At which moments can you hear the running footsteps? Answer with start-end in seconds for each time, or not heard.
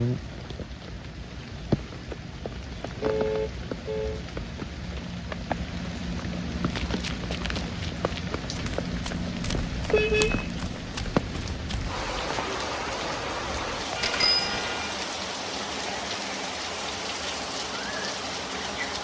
6.5-12.5.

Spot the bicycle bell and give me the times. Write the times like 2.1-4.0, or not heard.
14.0-14.8.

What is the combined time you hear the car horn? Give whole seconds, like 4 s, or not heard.
3 s.